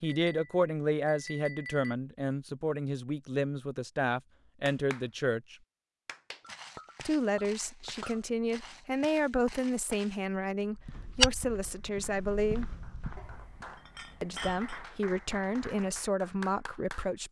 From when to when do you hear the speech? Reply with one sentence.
The speech can be heard from 0.0 to 5.5 s, from 7.0 to 12.7 s and from 14.2 to 17.2 s.